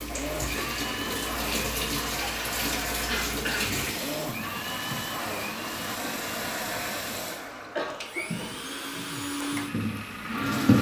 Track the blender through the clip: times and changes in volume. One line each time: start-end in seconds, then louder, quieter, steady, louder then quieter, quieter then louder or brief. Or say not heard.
0.0-10.7 steady.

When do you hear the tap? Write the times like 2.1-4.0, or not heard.
0.0-10.7.